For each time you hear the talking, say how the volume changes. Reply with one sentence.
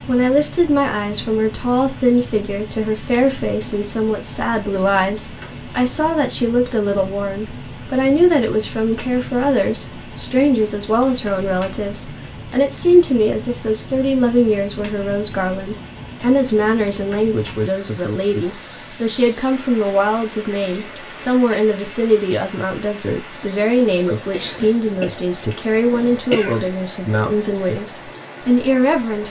You can hear the talking from 0.1 to 29.2 s, at a steady volume.